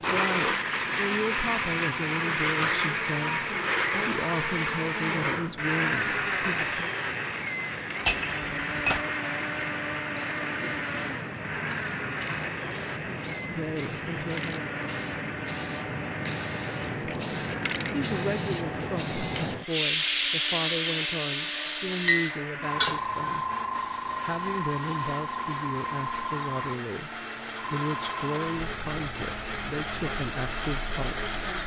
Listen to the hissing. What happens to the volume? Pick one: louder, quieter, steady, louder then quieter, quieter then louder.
louder then quieter.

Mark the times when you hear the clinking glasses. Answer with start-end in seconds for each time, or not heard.
8.1-9.1, 22.1-23.0.